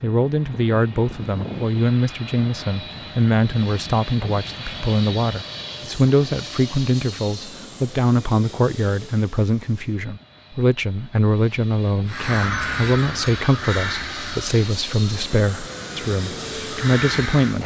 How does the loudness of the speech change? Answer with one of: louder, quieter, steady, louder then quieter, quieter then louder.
steady.